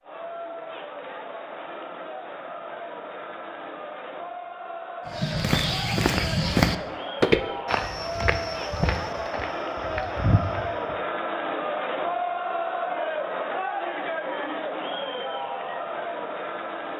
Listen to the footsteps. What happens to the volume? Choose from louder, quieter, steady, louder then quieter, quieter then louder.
louder then quieter.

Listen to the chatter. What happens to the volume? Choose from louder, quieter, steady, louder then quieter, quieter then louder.
louder.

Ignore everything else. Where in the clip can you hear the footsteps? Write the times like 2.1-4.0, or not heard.
5.2-10.9.